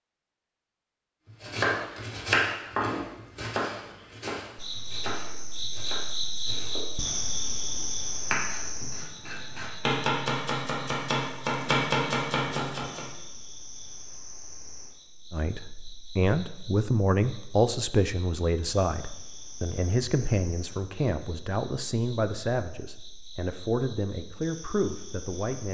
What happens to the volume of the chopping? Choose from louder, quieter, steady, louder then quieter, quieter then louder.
quieter then louder.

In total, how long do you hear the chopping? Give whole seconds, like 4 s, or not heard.
12 s.